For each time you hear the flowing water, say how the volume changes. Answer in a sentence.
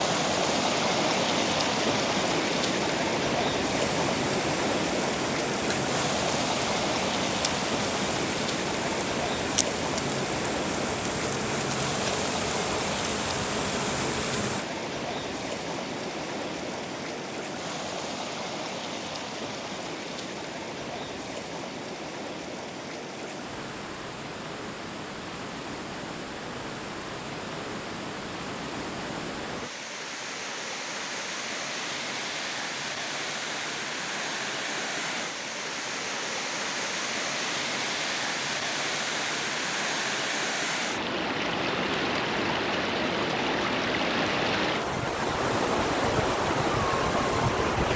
The flowing water can be heard from 0.0 to 47.9 s, getting quieter then louder.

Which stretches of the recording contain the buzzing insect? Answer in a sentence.
The buzzing insect can be heard from 3.9 to 14.7 s.